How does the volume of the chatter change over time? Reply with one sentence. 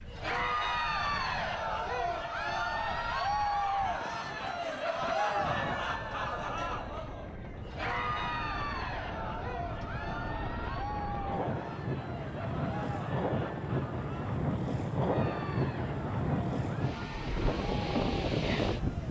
The loudness of the chatter goes down.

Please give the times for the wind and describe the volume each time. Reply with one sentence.
The wind can be heard from 0.0 to 19.0 s, getting louder.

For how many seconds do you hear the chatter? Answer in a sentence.
The chatter can be heard for 19 seconds in total.